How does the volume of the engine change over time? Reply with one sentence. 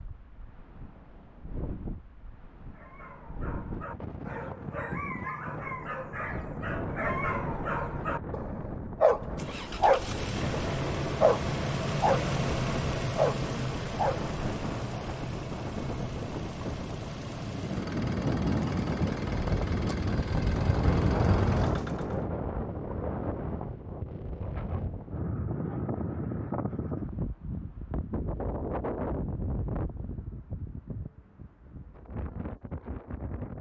The loudness of the engine goes down.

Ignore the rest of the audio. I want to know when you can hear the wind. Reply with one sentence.
You can hear the wind from 0.0 to 33.5 s.